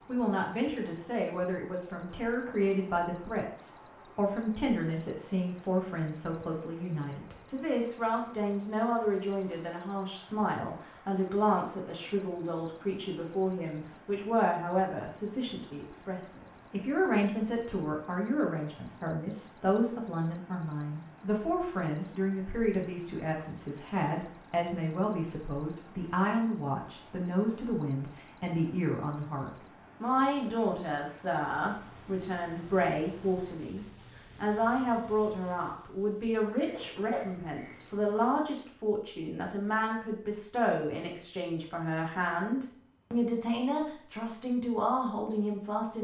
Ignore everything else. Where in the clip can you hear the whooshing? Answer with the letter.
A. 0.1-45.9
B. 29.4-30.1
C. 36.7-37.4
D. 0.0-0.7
C.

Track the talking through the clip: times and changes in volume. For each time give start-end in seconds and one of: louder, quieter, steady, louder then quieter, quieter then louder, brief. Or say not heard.
0.1-45.9 steady.